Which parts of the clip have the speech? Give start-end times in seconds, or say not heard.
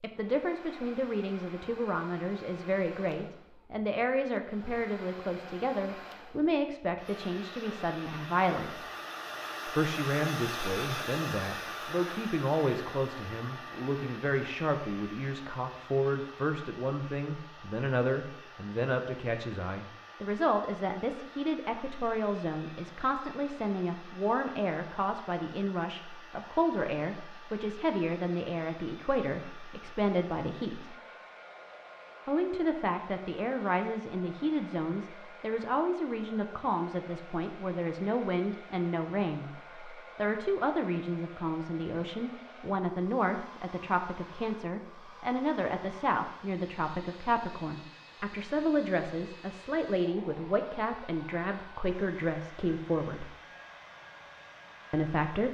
0.0-8.8, 9.7-30.9, 32.2-53.3, 54.9-55.4.